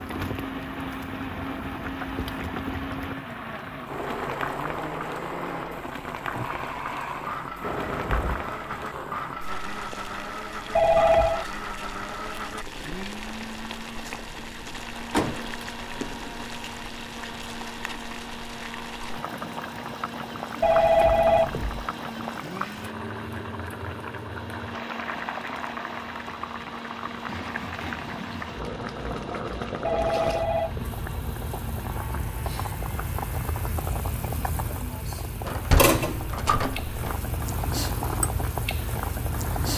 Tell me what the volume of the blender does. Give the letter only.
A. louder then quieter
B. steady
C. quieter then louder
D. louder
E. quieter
E.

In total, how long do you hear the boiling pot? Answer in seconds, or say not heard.
40 s.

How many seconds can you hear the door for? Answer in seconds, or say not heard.
5 s.